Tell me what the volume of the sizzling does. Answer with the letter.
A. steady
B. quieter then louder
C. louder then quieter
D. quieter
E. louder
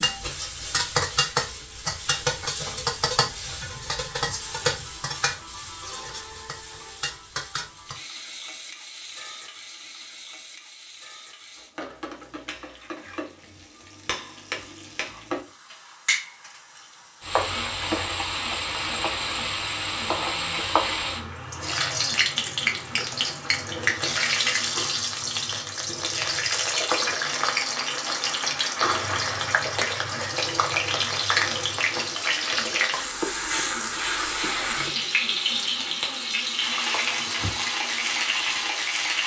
B.